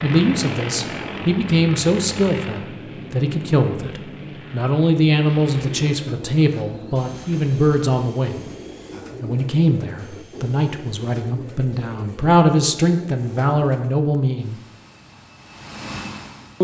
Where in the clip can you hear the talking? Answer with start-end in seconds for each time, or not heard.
0.0-8.5, 9.2-14.6.